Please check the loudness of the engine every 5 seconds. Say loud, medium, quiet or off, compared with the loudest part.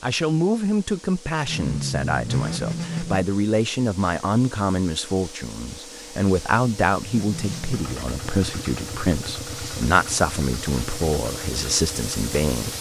loud, medium, quiet.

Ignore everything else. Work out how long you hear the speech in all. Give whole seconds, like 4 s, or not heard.
13 s.